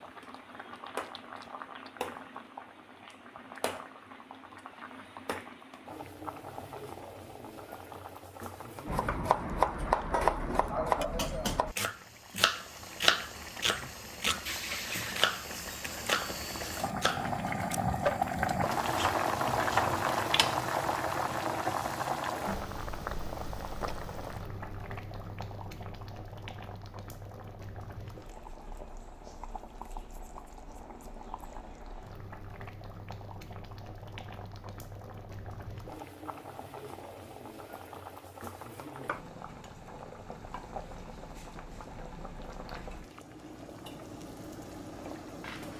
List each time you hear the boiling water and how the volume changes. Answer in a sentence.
You can hear the boiling water from 0.0 to 45.7 s, getting louder then quieter.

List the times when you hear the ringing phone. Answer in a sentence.
The ringing phone can't be heard in this clip.